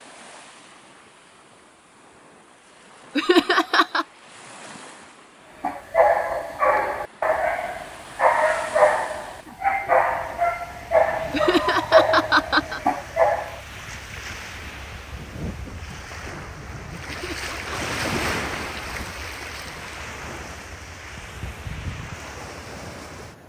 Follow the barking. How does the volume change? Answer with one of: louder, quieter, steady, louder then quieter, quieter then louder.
steady.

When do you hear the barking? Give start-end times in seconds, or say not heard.
5.6-13.6.